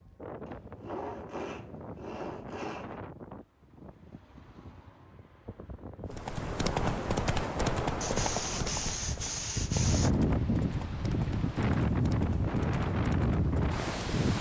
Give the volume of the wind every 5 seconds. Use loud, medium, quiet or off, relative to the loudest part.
quiet, medium, loud.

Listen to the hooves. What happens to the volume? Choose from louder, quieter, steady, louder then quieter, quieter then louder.
quieter.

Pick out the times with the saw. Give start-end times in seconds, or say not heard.
0.5-3.0, 8.0-10.1.